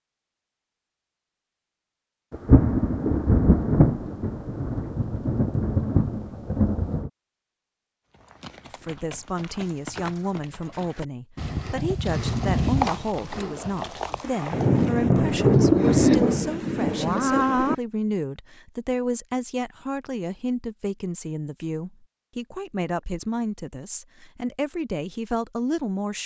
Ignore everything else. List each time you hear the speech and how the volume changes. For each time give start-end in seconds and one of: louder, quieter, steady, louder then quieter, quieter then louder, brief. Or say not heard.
8.7-26.2 steady.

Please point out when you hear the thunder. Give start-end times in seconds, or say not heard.
2.3-7.1, 14.2-17.8.